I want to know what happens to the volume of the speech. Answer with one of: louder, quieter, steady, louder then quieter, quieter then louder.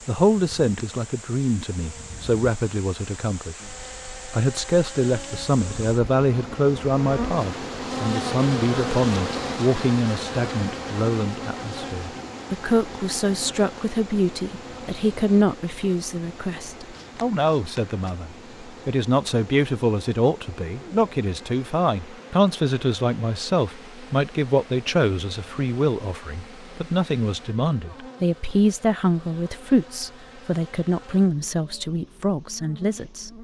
steady.